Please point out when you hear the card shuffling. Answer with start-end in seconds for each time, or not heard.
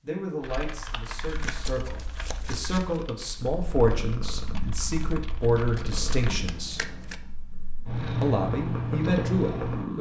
1.2-3.0, 5.6-7.2.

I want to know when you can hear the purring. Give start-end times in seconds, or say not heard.
3.3-9.9.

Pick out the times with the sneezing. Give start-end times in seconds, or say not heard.
not heard.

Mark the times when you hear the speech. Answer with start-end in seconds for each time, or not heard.
0.0-6.9, 8.2-9.9.